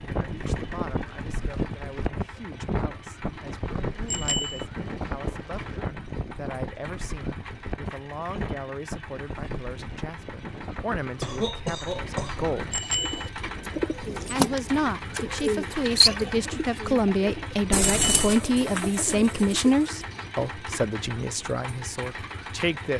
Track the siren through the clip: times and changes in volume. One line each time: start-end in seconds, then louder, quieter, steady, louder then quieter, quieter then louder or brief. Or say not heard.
not heard.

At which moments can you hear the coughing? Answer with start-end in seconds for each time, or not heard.
11.2-12.5.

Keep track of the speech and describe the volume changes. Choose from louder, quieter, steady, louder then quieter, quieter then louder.
louder.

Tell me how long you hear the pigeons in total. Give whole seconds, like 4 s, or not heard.
7 s.